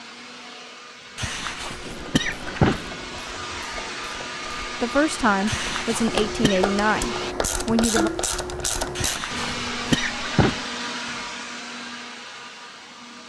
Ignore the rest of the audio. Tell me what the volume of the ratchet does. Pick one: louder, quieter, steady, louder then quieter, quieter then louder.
louder.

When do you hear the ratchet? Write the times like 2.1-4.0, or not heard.
1.6-9.2.